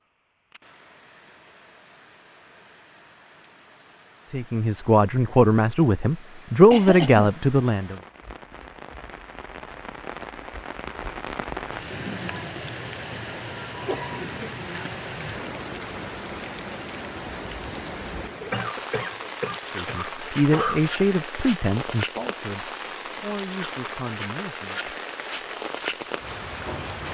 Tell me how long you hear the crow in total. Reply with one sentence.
You can't hear the crow here.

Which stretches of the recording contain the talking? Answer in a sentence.
You can hear the talking from 4.3 to 8.0 s and from 19.8 to 24.8 s.